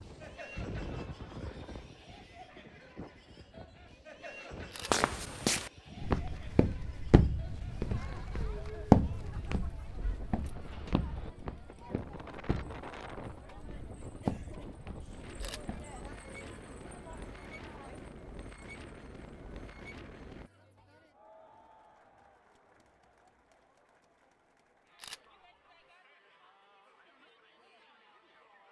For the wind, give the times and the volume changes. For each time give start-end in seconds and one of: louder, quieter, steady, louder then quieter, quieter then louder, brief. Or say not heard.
0.0-20.5 steady.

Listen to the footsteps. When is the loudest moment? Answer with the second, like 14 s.
9 s.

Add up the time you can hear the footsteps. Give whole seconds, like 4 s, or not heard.
11 s.